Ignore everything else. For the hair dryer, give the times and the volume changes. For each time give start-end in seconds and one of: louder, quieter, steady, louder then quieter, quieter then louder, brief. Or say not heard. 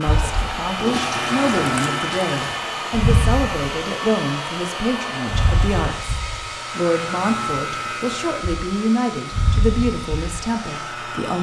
0.0-11.3 quieter.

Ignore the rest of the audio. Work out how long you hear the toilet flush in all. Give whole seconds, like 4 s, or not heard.
2 s.